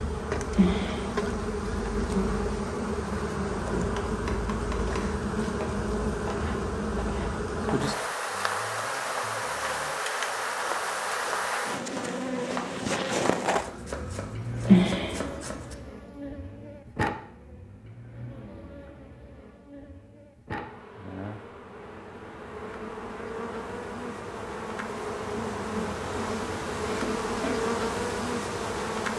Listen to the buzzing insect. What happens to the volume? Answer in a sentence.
The volume of the buzzing insect goes down, then up.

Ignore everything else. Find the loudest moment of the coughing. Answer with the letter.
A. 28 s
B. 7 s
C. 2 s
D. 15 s
D.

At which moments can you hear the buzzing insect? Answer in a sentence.
The buzzing insect can be heard from 0.0 to 29.1 s.